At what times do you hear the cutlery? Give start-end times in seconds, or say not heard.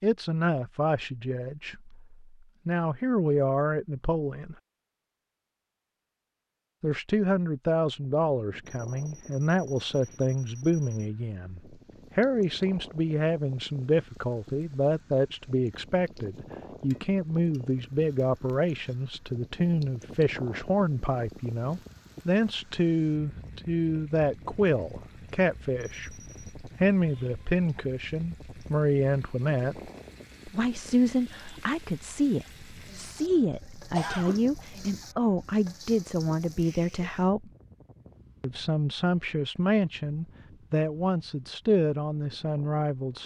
not heard.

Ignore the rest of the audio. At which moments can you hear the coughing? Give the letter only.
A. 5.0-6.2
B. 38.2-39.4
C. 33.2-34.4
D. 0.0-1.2
C.